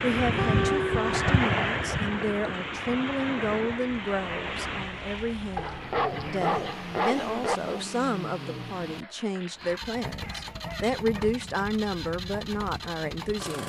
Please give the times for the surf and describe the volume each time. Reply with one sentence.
You can hear the surf from 0.0 to 7.0 s, getting quieter.